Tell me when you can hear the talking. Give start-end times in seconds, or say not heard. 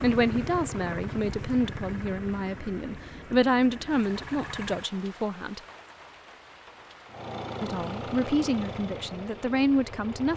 0.0-5.6, 7.6-10.3.